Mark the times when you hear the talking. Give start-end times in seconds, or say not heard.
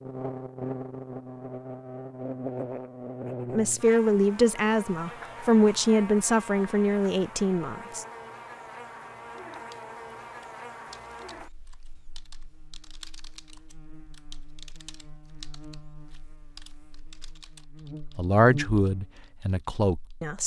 3.5-8.1, 18.1-20.4.